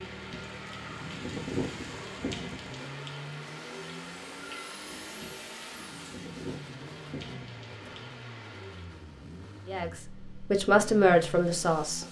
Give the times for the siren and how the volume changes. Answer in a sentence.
The siren can't be heard in this clip.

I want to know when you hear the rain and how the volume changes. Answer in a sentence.
The rain can be heard from 0.0 to 9.1 s, getting quieter.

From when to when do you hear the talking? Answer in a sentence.
The talking can be heard from 9.7 to 12.0 s.